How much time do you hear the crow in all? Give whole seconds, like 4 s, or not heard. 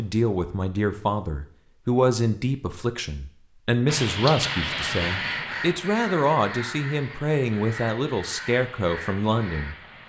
5 s.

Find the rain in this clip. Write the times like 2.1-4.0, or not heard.
3.9-10.0.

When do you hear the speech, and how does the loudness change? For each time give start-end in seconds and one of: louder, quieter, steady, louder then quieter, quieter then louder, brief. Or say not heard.
0.0-9.8 steady.